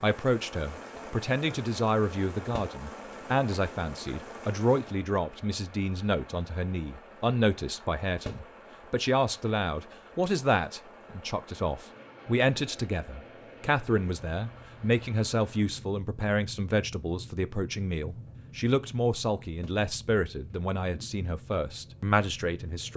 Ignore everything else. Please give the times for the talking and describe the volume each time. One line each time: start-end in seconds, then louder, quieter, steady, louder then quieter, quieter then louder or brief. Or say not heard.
0.0-22.9 steady.